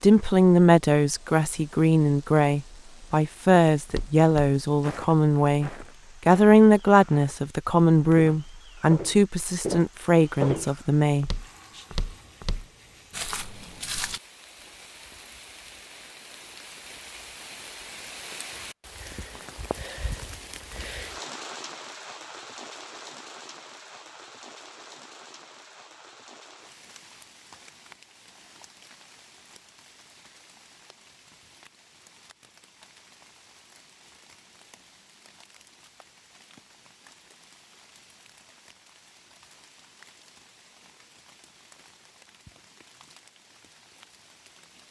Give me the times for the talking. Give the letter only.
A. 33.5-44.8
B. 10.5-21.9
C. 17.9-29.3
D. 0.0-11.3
D.